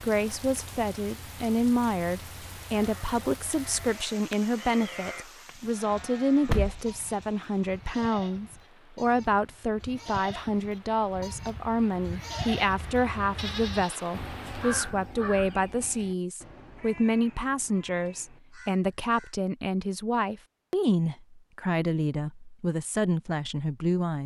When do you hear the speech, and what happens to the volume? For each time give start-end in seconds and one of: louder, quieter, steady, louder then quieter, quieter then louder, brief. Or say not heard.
0.0-24.2 steady.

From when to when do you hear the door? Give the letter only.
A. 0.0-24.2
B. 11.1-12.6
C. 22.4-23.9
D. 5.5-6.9
D.